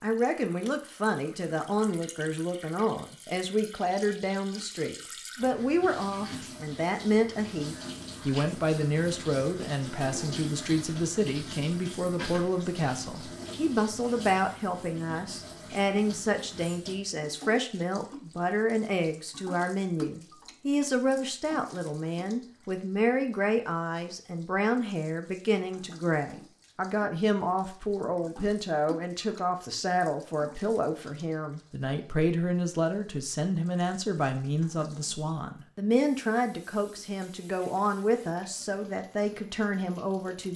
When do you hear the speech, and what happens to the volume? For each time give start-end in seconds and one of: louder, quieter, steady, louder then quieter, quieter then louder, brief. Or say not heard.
0.0-40.5 steady.